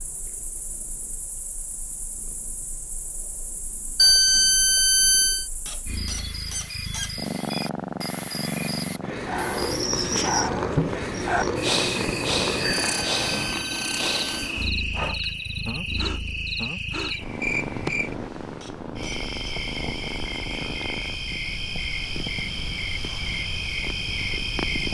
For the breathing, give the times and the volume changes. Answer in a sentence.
You can hear the breathing from 9.2 to 18.3 s, getting quieter.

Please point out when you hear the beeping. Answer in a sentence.
The beeping can be heard from 4.0 to 5.5 s and from 12.6 to 14.6 s.